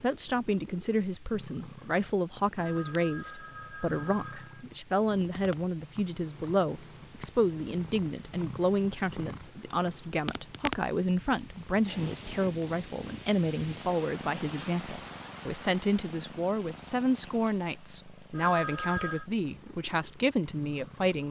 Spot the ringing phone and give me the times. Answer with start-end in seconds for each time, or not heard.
2.5-4.7, 18.3-19.2.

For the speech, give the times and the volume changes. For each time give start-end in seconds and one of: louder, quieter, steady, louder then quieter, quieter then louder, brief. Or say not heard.
0.0-21.2 steady.